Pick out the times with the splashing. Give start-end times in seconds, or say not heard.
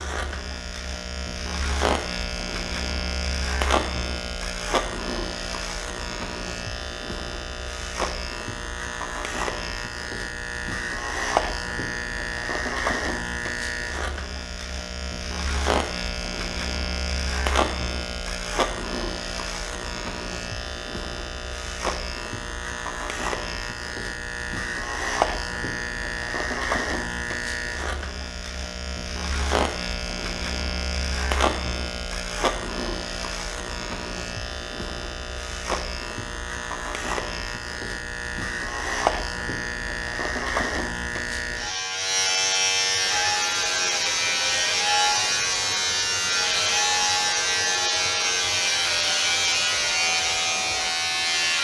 not heard.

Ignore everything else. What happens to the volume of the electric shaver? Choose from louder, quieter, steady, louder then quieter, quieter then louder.
louder.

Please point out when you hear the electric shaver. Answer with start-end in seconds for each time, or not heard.
0.0-51.5.